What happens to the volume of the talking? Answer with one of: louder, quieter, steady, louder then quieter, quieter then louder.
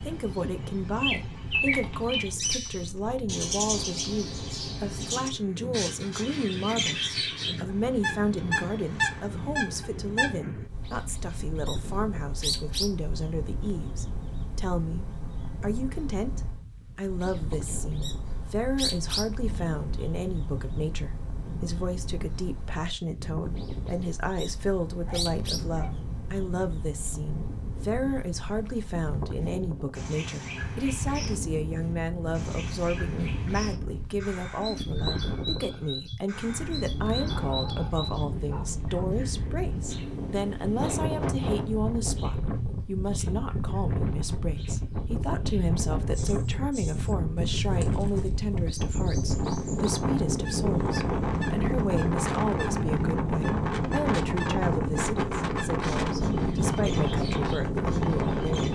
steady.